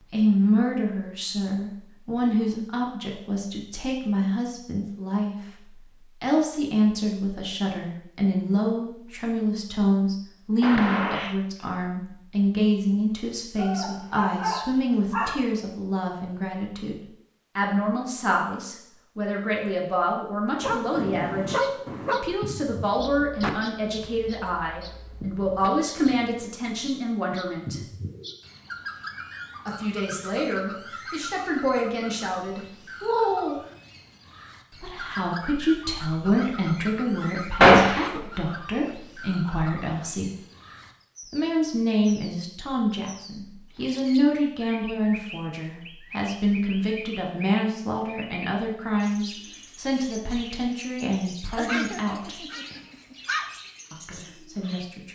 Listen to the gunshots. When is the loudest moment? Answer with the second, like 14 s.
38 s.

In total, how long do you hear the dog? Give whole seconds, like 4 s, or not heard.
6 s.